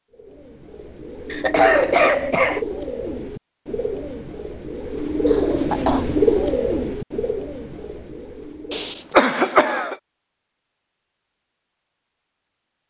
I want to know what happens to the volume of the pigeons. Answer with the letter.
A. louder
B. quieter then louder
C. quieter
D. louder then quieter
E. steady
D.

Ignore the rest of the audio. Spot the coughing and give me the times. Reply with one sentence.
You can hear the coughing from 1.3 to 2.6 s, from 5.2 to 6.0 s and from 8.7 to 9.9 s.